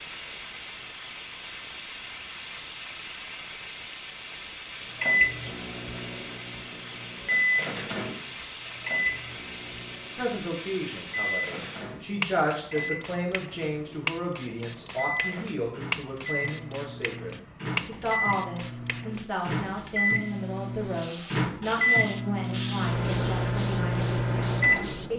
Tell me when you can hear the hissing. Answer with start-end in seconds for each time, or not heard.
0.0-25.1.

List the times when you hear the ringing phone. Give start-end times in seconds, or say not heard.
not heard.